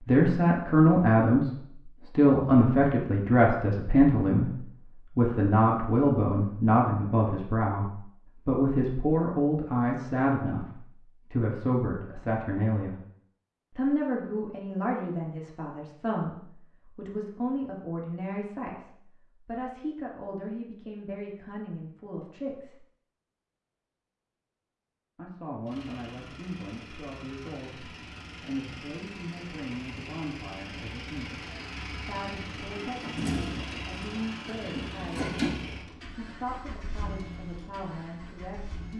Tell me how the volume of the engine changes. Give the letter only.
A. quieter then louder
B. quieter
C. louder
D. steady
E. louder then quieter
E.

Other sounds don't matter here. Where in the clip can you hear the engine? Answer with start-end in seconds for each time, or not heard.
25.6-38.9.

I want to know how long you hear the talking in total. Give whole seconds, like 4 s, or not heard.
34 s.